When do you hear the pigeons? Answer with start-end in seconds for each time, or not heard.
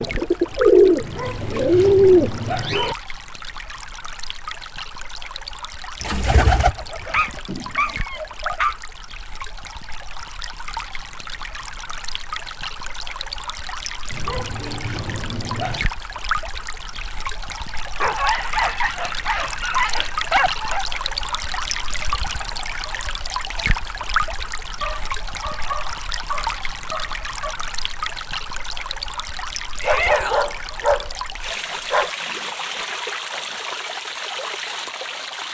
0.0-2.3, 6.0-8.6.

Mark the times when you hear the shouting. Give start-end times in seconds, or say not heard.
29.8-30.6.